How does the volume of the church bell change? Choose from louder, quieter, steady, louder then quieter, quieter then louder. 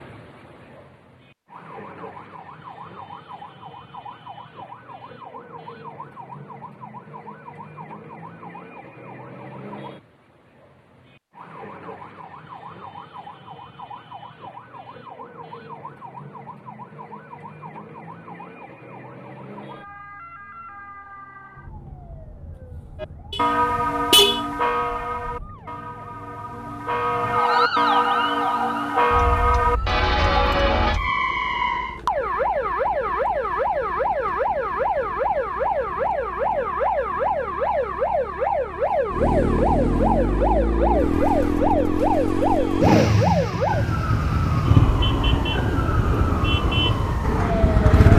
quieter then louder.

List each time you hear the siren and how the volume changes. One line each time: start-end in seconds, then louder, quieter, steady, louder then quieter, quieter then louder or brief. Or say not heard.
0.0-48.1 louder.